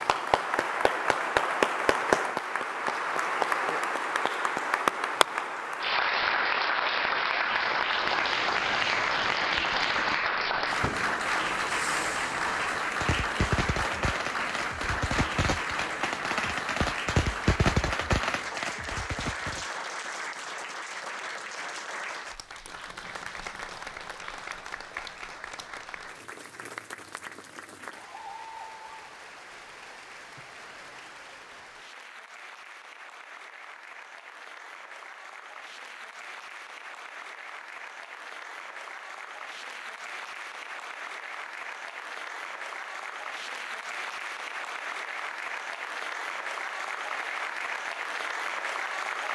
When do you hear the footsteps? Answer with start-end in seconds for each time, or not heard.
not heard.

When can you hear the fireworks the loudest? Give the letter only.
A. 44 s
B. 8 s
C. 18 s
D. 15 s
C.